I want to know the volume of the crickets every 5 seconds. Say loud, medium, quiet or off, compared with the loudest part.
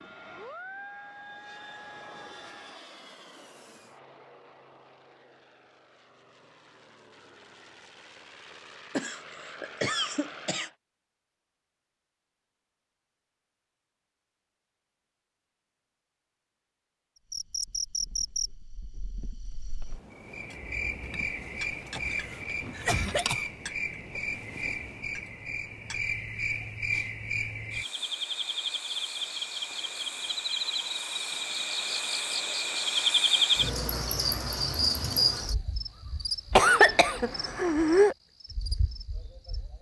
off, off, off, medium, medium, medium, loud, medium.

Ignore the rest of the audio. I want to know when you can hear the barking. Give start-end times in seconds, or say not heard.
not heard.